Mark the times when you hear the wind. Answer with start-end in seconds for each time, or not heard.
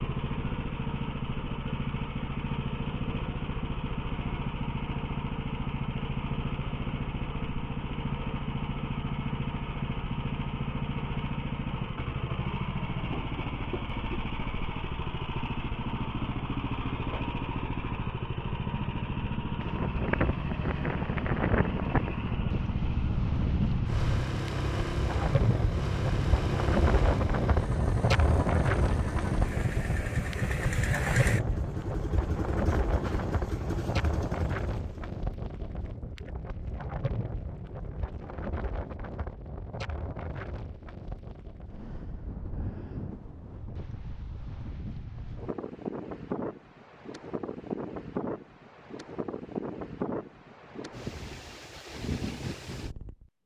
19.6-53.3.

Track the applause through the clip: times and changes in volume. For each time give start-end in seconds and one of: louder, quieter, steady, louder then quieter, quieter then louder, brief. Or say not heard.
not heard.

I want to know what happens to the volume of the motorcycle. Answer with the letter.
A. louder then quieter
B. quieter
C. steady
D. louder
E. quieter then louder
C.